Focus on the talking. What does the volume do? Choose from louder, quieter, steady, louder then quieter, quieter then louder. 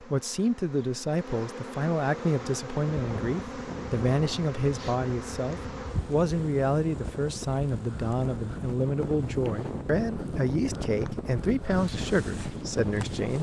steady.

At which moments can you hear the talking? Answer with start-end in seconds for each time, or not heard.
0.0-13.3.